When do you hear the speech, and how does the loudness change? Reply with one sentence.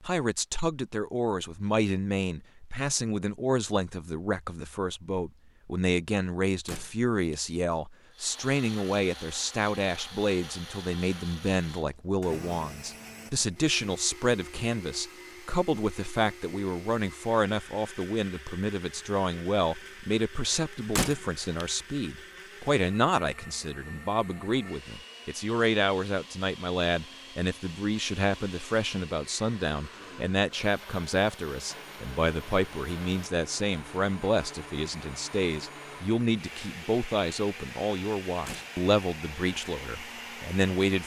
You can hear the speech from 0.0 to 41.0 s, at a steady volume.